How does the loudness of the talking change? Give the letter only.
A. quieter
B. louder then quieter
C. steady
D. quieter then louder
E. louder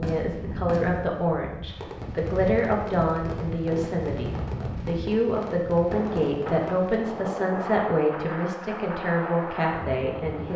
C.